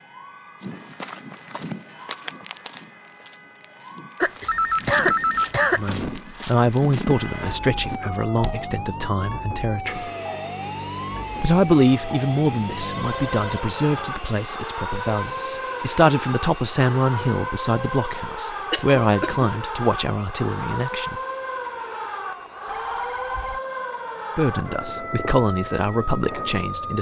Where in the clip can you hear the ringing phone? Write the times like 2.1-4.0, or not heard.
4.5-6.1, 12.8-14.1, 22.6-23.6.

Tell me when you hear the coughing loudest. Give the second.
5 s.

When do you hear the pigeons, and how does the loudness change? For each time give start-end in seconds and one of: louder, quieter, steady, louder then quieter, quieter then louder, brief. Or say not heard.
not heard.